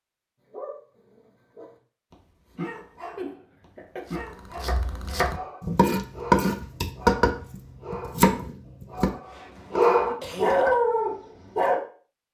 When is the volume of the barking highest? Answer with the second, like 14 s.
10 s.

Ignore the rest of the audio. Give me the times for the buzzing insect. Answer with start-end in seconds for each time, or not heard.
not heard.